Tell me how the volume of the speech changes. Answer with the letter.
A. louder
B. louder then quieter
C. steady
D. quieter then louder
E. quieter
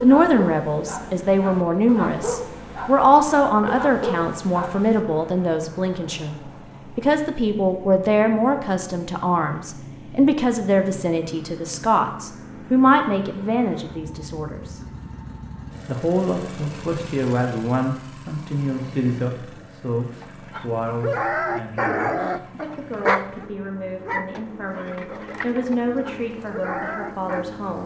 E.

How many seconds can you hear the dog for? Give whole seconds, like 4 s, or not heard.
12 s.